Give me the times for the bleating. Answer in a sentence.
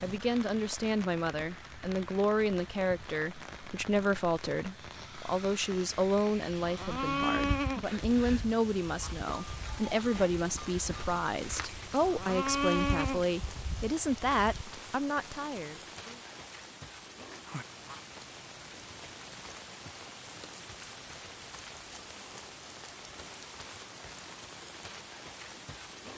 The bleating can be heard from 6.3 to 14.8 s.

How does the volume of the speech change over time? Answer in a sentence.
The volume of the speech stays about the same.